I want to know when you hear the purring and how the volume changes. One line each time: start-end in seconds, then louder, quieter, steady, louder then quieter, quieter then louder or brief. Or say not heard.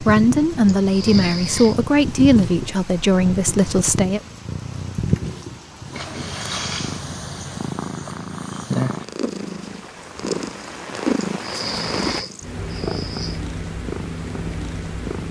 0.0-15.2 steady.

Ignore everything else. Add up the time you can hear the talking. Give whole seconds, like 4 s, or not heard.
4 s.